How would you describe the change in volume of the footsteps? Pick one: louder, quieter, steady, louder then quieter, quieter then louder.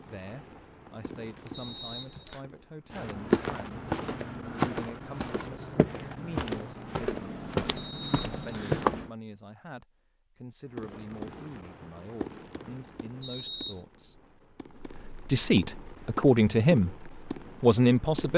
quieter.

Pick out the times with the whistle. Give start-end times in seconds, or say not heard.
1.5-2.4, 7.8-8.8, 13.2-13.8.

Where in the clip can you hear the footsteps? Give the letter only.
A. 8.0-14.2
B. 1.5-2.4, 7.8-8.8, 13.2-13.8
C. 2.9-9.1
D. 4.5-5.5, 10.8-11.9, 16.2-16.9
C.